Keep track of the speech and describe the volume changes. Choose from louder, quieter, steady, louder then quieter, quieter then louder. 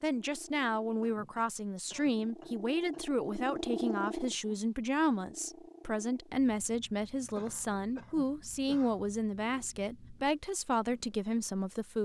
steady.